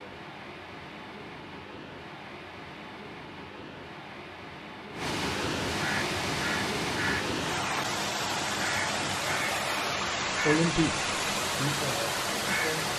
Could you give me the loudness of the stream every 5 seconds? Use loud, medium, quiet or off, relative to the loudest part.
quiet, loud, loud.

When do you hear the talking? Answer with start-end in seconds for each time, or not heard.
10.4-10.9, 11.6-12.9.